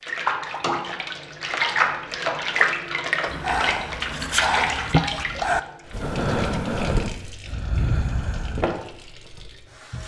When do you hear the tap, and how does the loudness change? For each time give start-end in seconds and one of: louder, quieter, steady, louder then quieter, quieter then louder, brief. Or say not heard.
0.0-10.0 quieter.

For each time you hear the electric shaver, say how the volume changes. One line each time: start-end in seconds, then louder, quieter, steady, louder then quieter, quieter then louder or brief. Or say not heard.
not heard.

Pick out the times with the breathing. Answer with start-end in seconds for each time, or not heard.
3.2-8.7.